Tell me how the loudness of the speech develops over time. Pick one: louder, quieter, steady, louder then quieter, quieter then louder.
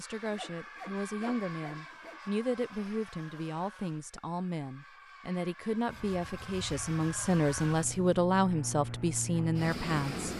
louder.